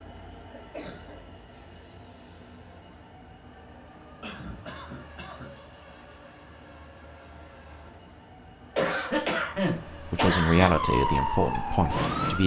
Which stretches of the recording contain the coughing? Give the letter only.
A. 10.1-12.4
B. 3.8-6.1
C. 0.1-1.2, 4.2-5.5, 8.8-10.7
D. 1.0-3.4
C.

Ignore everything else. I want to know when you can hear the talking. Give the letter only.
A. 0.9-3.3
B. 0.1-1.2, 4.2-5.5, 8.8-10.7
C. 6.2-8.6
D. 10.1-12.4
D.